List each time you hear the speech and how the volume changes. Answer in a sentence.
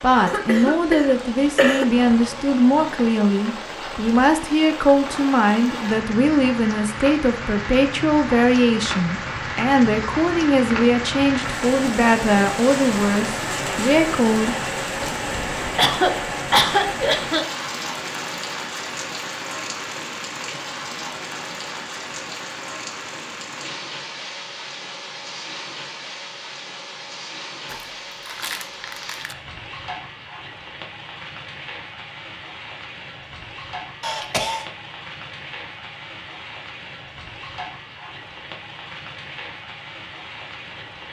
You can hear the speech from 0.0 to 14.6 s, at a steady volume.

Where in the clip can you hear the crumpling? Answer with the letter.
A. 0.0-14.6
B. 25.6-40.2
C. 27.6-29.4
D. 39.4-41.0
C.